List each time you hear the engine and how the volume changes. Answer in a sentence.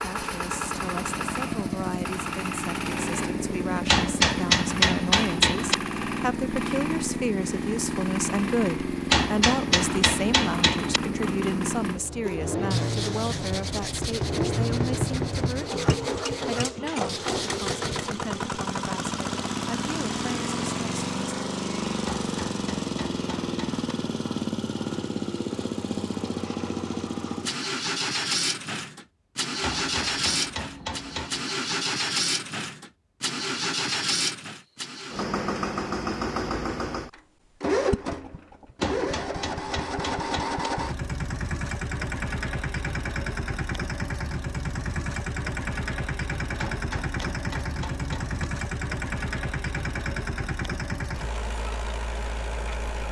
You can hear the engine from 0.0 to 53.0 s, at a steady volume.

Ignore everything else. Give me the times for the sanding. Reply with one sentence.
The sanding can be heard from 12.2 to 18.1 s.